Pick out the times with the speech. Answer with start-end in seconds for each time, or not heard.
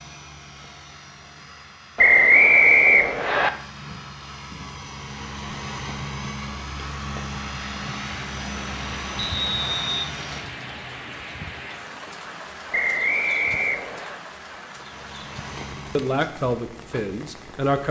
15.9-17.8.